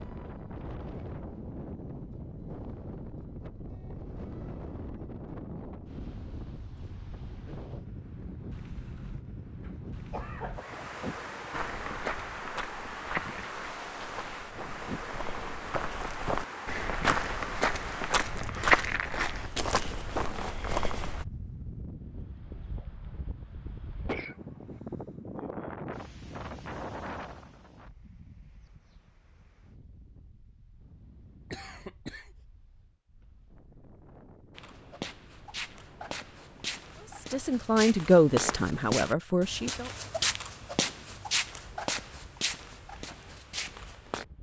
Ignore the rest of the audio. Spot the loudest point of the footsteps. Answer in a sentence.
The volume of the footsteps peaks at 19 seconds.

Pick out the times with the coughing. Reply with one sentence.
You can hear the coughing from 9.6 to 10.8 s, from 24.1 to 24.8 s and from 31.5 to 32.3 s.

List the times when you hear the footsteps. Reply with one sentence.
The footsteps can be heard from 11.5 to 21.2 s and from 34.5 to 44.2 s.